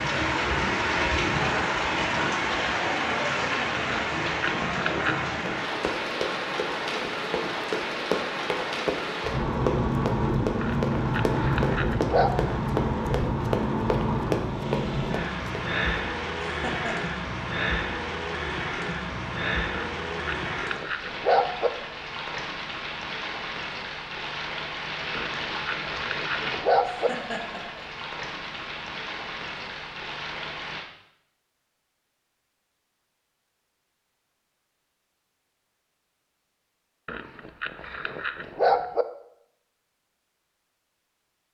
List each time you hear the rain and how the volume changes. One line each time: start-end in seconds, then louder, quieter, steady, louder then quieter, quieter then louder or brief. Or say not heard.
0.0-30.9 quieter.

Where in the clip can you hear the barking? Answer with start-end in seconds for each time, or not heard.
3.9-5.3, 10.6-12.3, 19.7-21.7, 25.1-27.1, 37.0-39.0.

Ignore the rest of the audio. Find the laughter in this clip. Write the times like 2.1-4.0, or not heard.
16.4-16.9, 26.9-27.9.